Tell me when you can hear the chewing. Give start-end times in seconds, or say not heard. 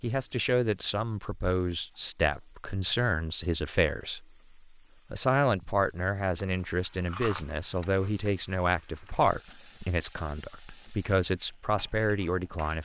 6.3-8.1.